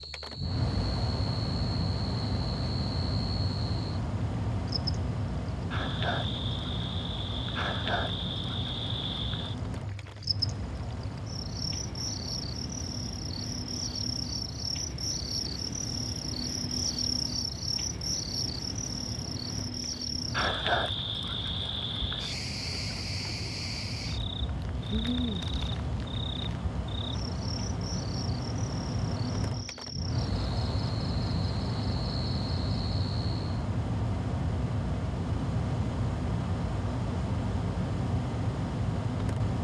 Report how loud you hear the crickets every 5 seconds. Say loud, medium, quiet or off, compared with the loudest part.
medium, loud, loud, loud, loud, medium, medium, off.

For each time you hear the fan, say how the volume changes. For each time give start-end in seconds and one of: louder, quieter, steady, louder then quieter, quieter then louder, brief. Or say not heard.
0.0-39.6 quieter then louder.